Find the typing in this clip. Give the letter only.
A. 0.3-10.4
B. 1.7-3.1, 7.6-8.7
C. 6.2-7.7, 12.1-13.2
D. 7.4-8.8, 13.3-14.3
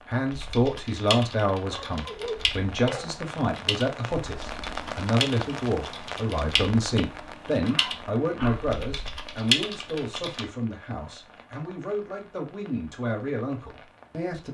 A.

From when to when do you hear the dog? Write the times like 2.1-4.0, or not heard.
1.7-3.1, 7.6-8.7.